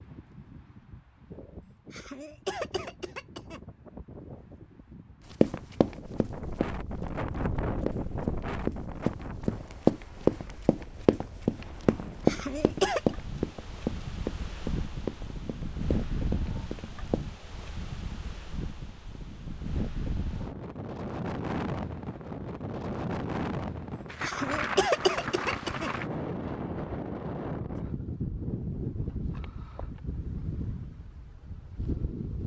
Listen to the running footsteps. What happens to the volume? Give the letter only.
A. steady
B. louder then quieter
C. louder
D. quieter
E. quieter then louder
B.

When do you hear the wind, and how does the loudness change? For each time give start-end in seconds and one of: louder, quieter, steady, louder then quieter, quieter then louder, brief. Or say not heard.
0.0-32.4 louder.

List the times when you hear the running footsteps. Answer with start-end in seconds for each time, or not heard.
5.4-17.2.